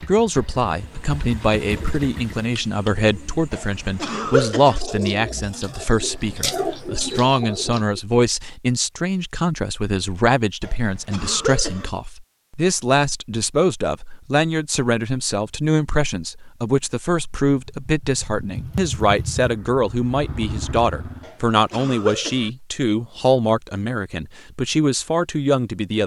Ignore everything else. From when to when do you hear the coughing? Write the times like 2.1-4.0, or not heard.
3.5-4.8, 10.6-11.9, 21.2-22.5.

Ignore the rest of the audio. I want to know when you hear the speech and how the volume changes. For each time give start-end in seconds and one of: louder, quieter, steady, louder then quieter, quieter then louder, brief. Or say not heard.
0.0-26.0 steady.